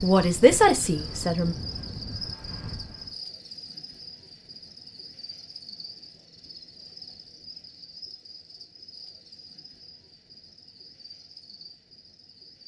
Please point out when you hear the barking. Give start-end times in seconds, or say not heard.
not heard.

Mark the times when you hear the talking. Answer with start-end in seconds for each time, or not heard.
0.0-1.6.